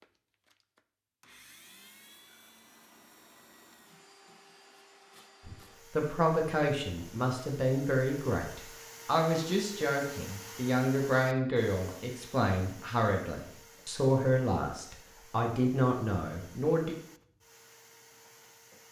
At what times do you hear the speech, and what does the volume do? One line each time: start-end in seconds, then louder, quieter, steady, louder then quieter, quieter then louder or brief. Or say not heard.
5.5-16.9 steady.